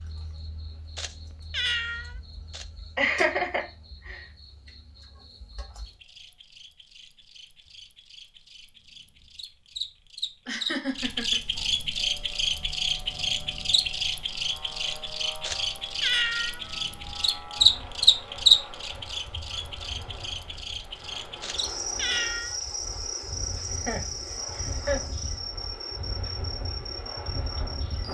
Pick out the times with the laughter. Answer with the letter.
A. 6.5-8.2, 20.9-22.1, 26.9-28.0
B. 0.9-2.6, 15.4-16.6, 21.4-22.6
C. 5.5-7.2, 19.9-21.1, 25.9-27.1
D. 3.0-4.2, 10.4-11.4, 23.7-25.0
D.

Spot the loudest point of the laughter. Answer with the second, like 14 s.
3 s.